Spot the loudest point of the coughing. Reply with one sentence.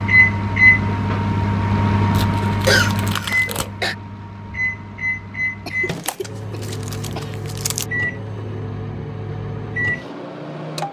The loudest moment of the coughing is at 3 seconds.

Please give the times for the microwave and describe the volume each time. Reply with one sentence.
You can hear the microwave from 0.0 to 10.8 s, getting quieter.